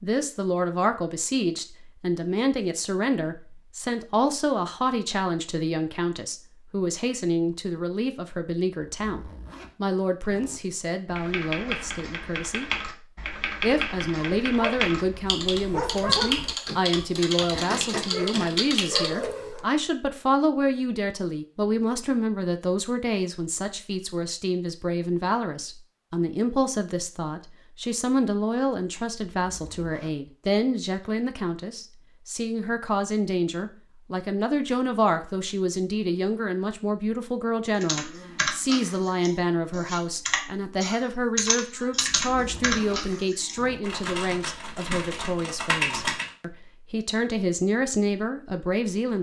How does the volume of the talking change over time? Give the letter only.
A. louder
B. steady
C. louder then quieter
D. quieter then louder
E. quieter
B.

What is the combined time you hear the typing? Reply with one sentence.
The typing can be heard for 17 seconds in total.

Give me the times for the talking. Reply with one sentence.
You can hear the talking from 0.0 to 12.7 s and from 13.6 to 49.1 s.